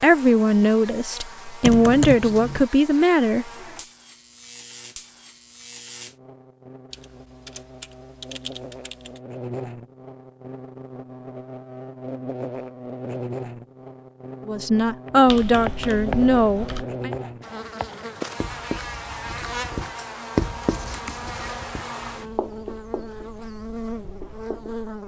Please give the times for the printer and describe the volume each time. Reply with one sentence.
You can't hear the printer here.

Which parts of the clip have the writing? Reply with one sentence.
The writing can be heard from 15.1 to 24.8 s.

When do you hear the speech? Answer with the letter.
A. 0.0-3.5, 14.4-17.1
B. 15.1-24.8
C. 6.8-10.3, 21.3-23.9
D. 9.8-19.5
A.